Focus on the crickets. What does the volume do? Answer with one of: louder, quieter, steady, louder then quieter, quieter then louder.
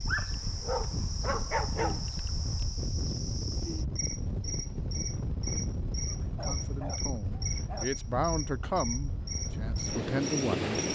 steady.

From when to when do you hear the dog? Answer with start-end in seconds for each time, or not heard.
0.1-2.6, 6.0-8.0.